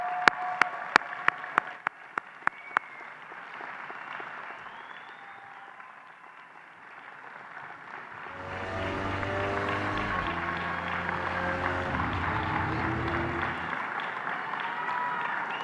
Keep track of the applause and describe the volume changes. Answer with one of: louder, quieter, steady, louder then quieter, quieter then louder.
quieter then louder.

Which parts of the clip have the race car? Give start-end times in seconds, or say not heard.
8.2-13.8.